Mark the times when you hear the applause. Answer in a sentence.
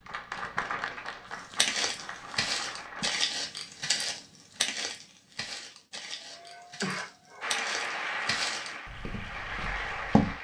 The applause can be heard from 0.0 to 3.2 s and from 7.4 to 10.3 s.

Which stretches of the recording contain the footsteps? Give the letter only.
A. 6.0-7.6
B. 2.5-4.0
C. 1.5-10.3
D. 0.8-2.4
C.